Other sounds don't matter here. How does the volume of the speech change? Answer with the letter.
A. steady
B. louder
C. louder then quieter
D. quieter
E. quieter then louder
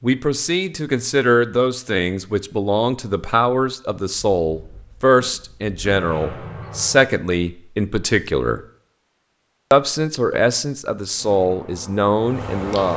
A.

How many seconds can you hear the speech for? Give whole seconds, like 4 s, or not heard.
12 s.